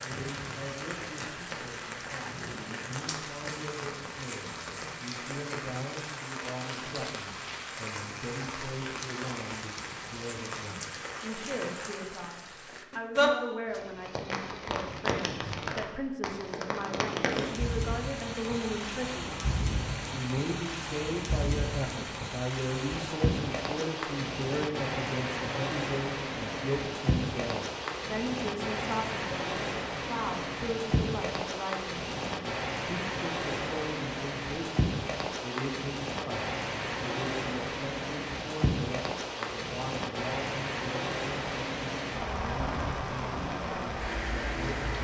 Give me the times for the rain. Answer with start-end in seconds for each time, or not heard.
0.0-44.9.